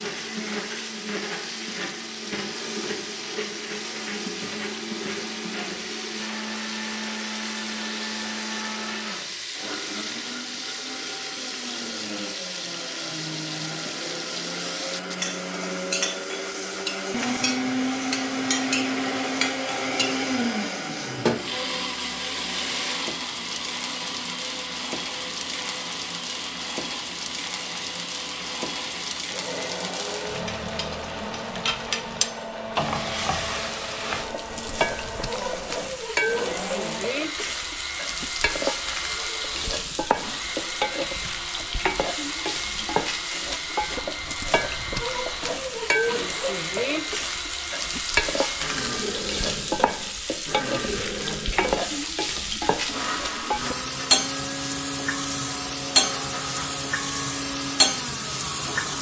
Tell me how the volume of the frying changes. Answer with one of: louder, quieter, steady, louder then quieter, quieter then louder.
louder.